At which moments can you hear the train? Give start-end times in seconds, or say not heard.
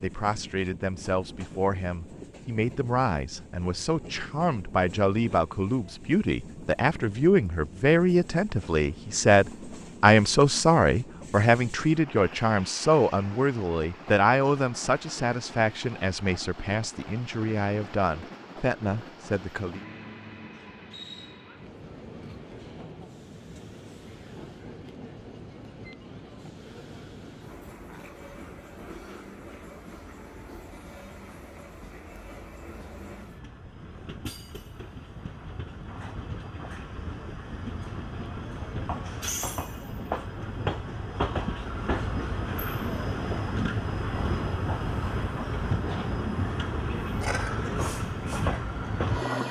0.0-49.4.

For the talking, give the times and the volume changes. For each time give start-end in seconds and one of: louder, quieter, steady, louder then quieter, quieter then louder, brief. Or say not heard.
0.0-19.9 louder then quieter.